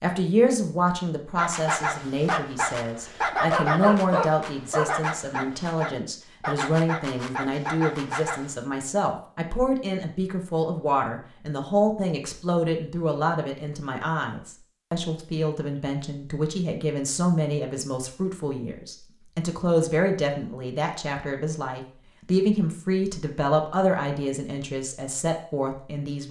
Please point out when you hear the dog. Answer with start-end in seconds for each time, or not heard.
1.4-8.7.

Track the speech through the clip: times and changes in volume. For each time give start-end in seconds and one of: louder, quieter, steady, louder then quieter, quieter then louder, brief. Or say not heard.
0.0-26.2 steady.